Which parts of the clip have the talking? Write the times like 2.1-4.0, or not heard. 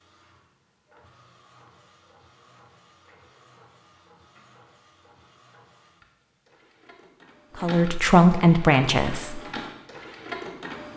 7.5-9.4.